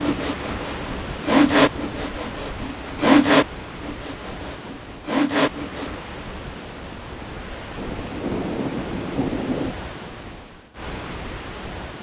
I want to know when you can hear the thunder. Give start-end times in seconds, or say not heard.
7.8-9.8.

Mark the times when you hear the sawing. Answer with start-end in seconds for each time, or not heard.
0.0-5.9.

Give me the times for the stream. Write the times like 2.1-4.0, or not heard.
0.0-11.9.